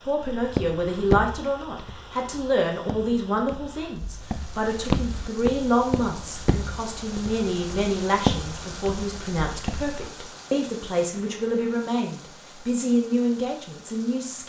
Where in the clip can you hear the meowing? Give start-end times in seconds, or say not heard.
not heard.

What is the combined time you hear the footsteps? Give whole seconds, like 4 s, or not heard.
10 s.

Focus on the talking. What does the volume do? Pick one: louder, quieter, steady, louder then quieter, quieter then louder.
steady.